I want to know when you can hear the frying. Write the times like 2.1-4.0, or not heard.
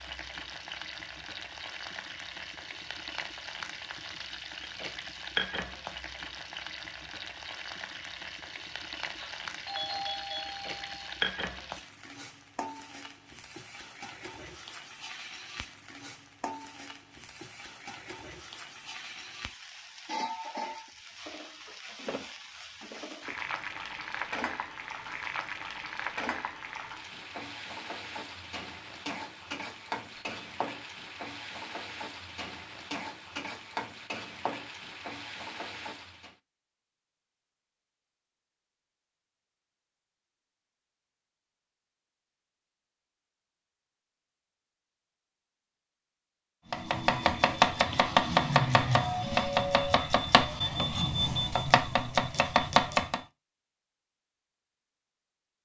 0.0-36.4.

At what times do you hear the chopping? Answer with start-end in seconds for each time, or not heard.
46.7-53.2.